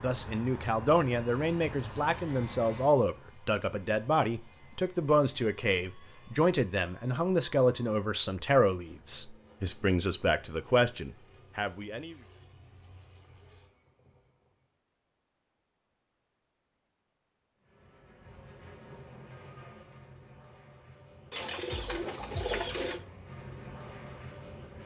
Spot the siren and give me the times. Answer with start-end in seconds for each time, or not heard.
not heard.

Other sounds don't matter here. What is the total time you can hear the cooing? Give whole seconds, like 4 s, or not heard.
2 s.